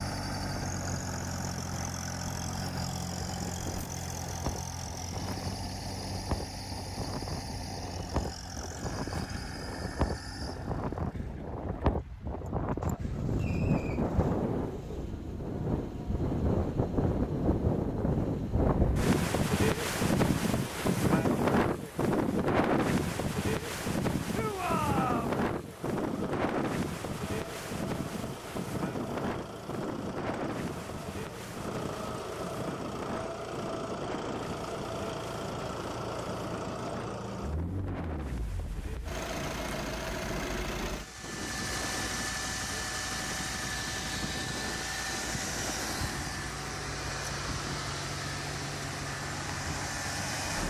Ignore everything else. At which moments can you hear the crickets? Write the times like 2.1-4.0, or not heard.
not heard.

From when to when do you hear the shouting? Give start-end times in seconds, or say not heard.
24.3-25.4.